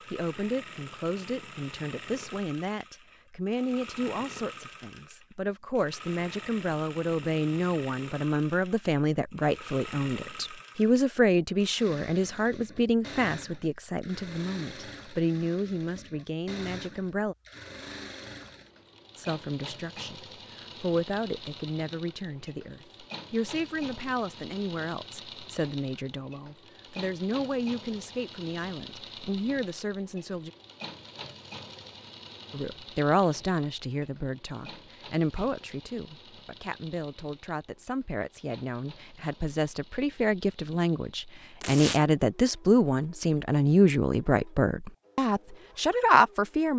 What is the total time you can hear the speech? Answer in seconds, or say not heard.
43 s.